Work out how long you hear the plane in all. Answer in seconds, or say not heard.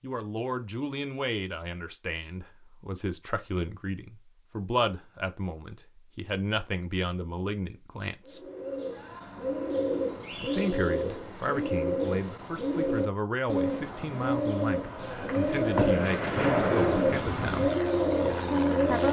3 s.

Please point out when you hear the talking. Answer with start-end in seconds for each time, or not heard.
0.0-8.4, 10.4-17.7, 18.4-19.0.